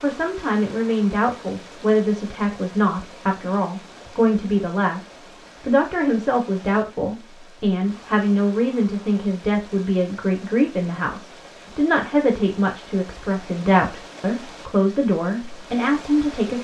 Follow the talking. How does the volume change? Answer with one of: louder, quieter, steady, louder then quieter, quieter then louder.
steady.